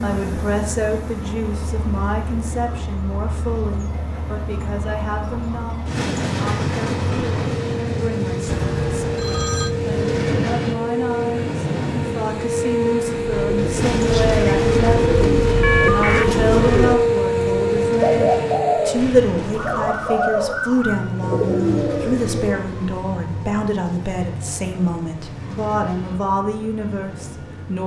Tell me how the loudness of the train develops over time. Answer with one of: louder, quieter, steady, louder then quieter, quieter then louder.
louder then quieter.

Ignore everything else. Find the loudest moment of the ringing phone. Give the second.
16 s.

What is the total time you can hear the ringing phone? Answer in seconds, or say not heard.
2 s.